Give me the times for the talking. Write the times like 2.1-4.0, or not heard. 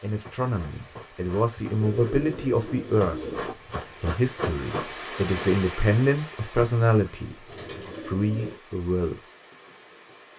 0.0-9.2.